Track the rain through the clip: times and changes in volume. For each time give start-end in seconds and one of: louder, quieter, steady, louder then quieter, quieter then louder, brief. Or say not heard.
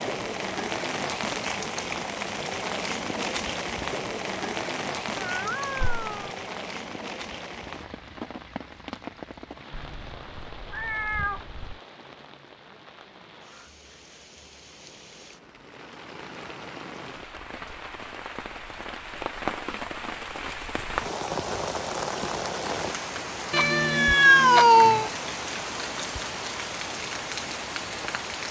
0.0-28.4 quieter then louder.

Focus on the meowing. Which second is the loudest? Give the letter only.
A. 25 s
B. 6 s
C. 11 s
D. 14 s
A.